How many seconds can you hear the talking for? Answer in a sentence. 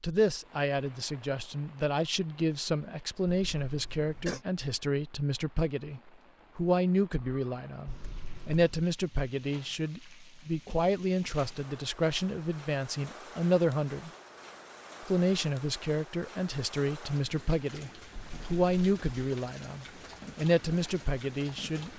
You can hear the talking for 21 seconds altogether.